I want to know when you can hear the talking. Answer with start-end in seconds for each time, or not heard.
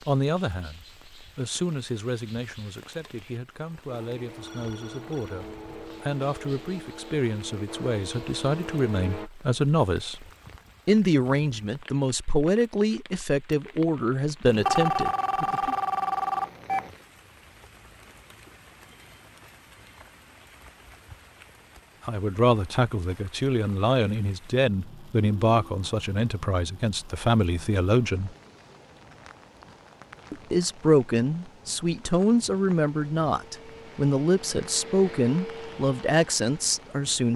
0.1-10.2, 10.8-15.8, 22.1-28.4, 30.3-37.3.